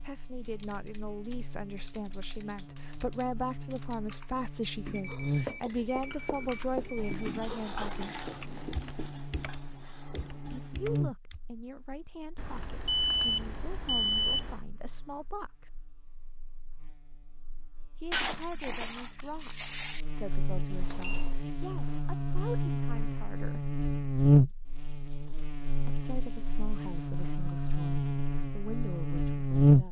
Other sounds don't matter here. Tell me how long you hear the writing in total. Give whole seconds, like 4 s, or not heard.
5 s.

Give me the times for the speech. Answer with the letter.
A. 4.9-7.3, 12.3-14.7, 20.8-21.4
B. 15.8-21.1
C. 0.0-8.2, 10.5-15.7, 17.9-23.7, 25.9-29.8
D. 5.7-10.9
C.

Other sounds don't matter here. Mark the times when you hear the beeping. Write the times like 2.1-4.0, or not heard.
4.9-7.3, 12.3-14.7, 20.8-21.4.